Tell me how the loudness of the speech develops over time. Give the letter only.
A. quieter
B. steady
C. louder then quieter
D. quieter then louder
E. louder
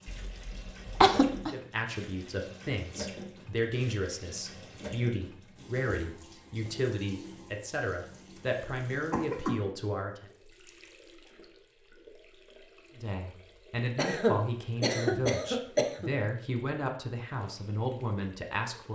B.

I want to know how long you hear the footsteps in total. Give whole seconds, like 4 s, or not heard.
not heard.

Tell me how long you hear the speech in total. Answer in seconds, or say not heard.
15 s.